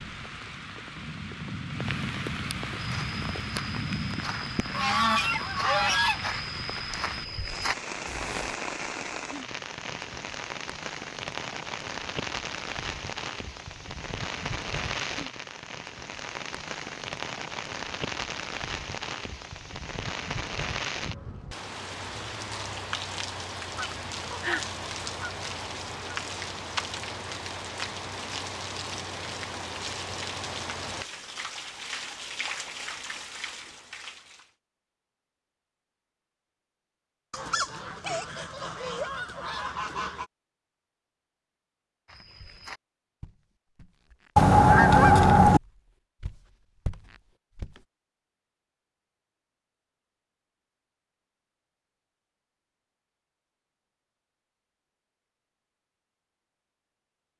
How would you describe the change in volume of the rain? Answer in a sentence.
The loudness of the rain stays about the same.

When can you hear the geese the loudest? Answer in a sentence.
The loudest moment of the geese is at 45 seconds.